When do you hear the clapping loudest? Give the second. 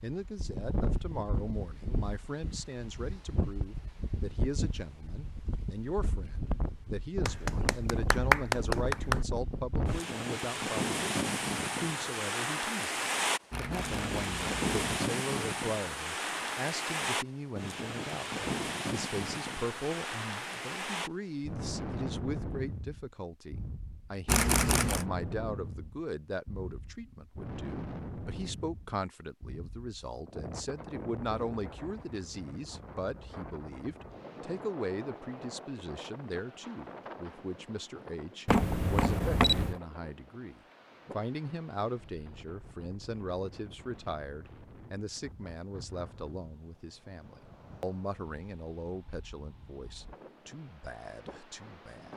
8 s.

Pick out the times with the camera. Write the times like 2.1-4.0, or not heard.
13.5-15.0, 24.2-25.1, 38.5-39.8.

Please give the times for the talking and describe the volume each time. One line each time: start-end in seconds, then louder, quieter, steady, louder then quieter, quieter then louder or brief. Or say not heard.
0.0-52.1 steady.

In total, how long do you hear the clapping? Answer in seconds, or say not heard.
2 s.